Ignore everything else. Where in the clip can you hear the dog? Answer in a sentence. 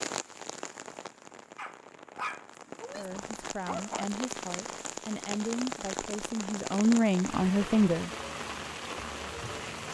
You can hear the dog from 1.6 to 4.0 s.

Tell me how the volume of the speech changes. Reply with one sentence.
The volume of the speech goes up.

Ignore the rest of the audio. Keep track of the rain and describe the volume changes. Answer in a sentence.
The volume of the rain goes up.